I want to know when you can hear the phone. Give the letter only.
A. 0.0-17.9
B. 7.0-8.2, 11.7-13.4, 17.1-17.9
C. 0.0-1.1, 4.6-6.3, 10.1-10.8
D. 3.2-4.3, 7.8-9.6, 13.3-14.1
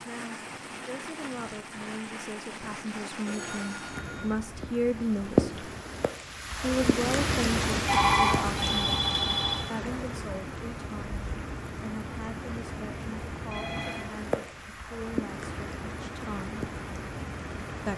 D.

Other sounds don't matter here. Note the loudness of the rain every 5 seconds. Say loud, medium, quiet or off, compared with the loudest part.
medium, loud, medium, medium.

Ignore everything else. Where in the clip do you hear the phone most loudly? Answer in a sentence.
The volume of the phone peaks at 8 seconds.